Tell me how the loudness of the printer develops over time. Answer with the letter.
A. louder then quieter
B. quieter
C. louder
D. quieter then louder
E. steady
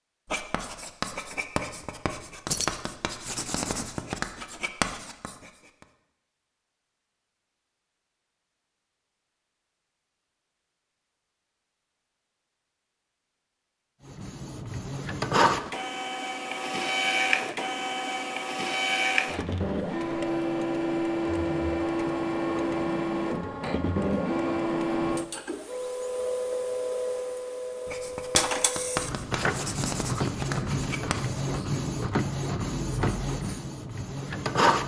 E.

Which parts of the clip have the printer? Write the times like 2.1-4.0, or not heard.
14.1-34.8.